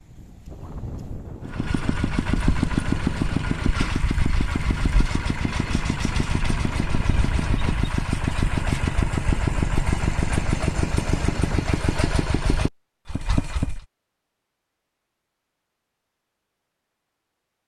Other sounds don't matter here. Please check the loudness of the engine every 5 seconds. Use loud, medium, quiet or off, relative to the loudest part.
loud, loud, loud, off.